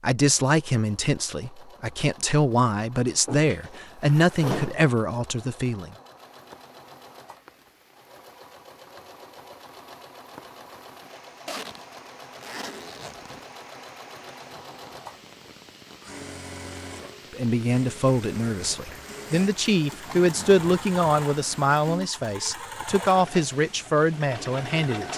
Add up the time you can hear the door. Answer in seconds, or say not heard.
2 s.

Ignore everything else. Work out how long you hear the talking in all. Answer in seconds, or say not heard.
14 s.